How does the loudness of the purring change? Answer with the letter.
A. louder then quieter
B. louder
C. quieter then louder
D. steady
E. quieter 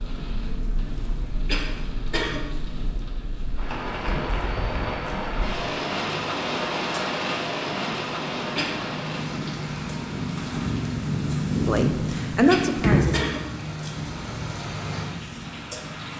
B.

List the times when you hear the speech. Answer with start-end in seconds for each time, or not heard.
11.7-13.3.